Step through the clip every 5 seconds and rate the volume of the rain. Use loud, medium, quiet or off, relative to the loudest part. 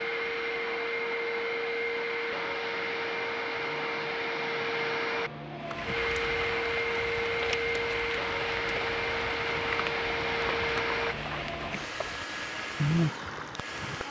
off, loud, loud.